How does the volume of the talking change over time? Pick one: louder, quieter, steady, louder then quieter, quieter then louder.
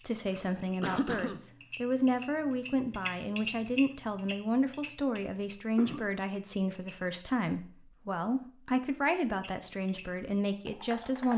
steady.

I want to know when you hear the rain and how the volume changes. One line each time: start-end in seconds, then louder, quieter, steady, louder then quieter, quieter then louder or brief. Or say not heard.
not heard.